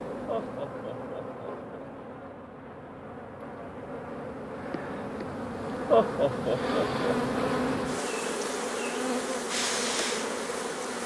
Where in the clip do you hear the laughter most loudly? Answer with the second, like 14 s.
6 s.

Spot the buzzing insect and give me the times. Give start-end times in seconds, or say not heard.
0.0-11.0.